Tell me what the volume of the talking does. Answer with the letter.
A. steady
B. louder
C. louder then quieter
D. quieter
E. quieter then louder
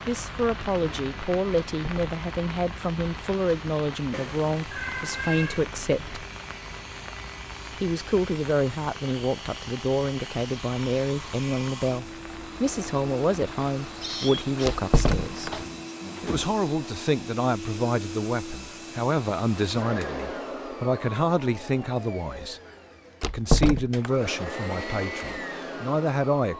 A.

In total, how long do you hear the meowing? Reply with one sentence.
You can hear the meowing for 4 seconds altogether.